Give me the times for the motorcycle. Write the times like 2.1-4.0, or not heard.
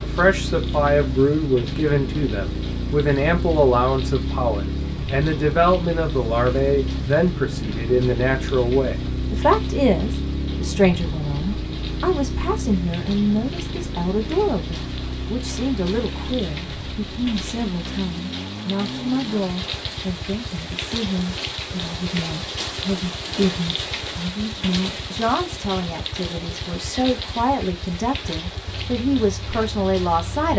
0.0-30.5.